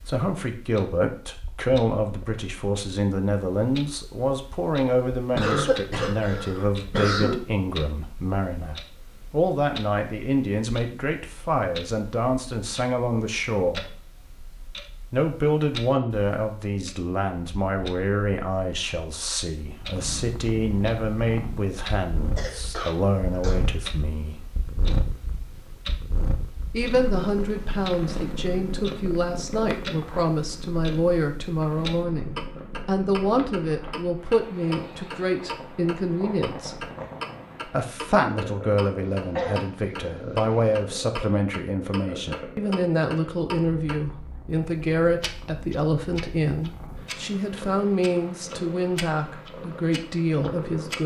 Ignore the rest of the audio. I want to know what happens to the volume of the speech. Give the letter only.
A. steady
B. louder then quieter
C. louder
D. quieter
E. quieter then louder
A.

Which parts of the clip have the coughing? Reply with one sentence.
You can hear the coughing from 5.3 to 7.3 s, from 22.4 to 23.6 s and from 39.1 to 40.8 s.